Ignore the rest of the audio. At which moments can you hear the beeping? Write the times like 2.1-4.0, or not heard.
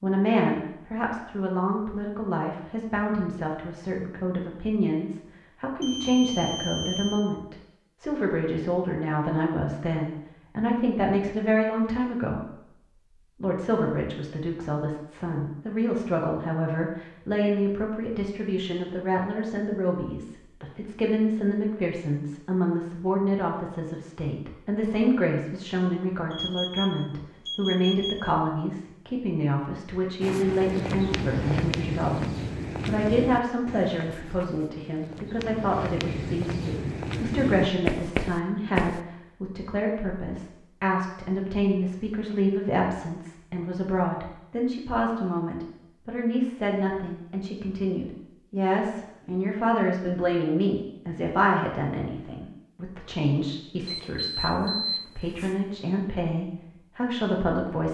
5.8-7.2, 26.3-28.4, 53.9-55.6.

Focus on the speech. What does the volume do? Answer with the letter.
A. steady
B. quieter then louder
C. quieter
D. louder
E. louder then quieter
A.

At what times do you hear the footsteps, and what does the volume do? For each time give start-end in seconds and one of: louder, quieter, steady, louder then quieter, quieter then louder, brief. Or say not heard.
30.2-39.0 quieter then louder.